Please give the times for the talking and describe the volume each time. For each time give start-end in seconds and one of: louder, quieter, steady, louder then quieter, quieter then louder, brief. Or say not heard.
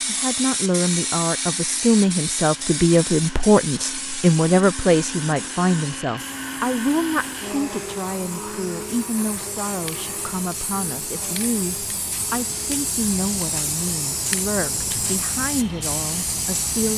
0.1-16.9 quieter.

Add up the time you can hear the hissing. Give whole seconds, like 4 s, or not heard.
17 s.